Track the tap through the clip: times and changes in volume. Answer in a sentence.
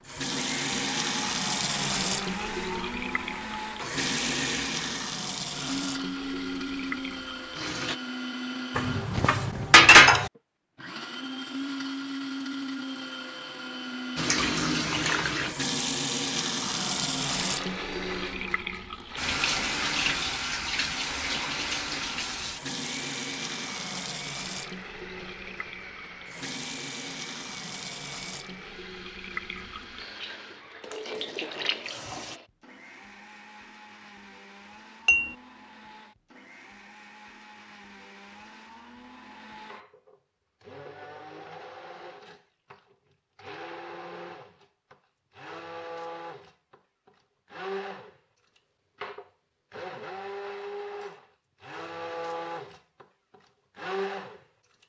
The tap can be heard from 0.0 to 8.0 s, getting quieter; and from 14.2 to 32.4 s, getting quieter.